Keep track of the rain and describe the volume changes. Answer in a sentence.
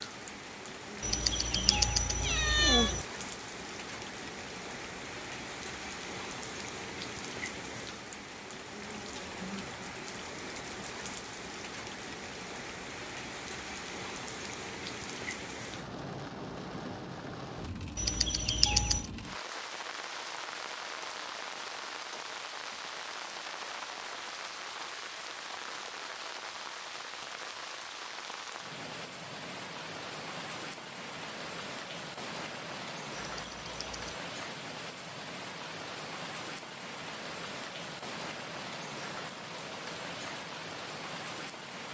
The loudness of the rain stays about the same.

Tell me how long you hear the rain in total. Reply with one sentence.
You can hear the rain for 42 seconds altogether.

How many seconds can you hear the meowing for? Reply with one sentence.
The meowing can be heard for 4 seconds in total.